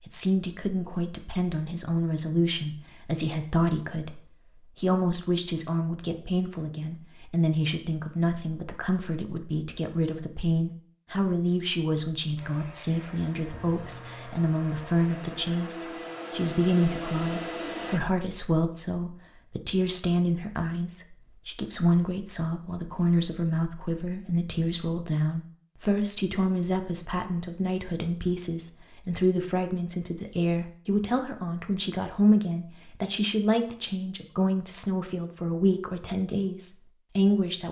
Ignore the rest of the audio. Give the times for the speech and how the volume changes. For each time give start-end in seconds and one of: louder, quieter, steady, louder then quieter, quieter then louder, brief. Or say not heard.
0.1-37.6 steady.